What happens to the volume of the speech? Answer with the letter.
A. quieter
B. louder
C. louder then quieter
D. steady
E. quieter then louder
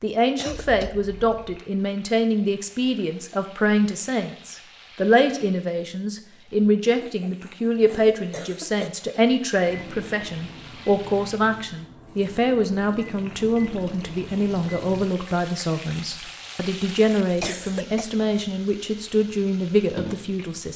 D.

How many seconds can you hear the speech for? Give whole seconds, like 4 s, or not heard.
21 s.